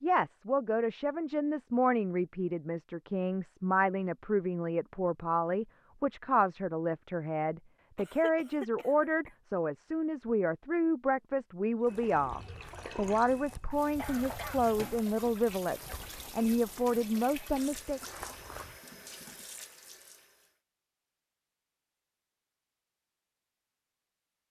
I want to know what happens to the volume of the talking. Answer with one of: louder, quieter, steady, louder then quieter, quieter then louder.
steady.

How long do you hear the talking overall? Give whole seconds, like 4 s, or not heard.
18 s.